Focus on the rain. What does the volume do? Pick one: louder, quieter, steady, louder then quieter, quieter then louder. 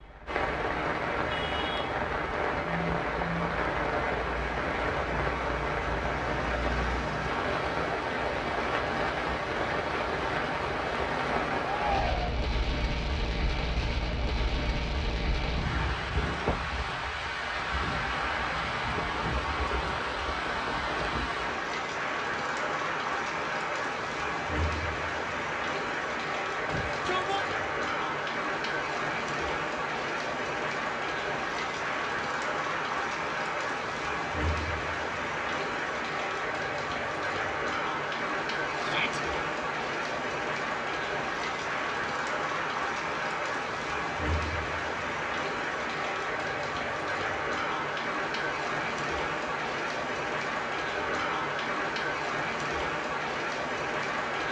steady.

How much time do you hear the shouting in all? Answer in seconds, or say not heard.
2 s.